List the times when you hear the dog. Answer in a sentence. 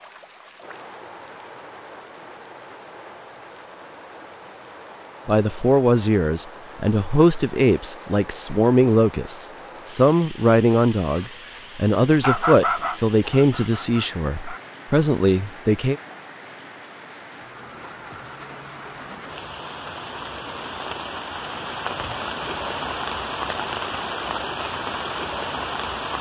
The dog can be heard from 12.1 to 14.7 s.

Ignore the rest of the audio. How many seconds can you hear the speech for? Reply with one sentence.
The speech can be heard for 11 seconds in total.